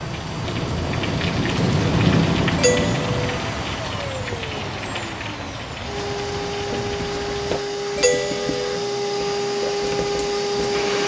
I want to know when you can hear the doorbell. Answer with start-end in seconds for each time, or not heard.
2.5-3.2, 8.0-8.8.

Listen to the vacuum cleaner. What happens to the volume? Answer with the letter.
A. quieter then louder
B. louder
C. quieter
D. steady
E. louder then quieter
B.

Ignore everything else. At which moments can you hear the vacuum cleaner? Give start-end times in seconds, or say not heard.
0.0-11.0.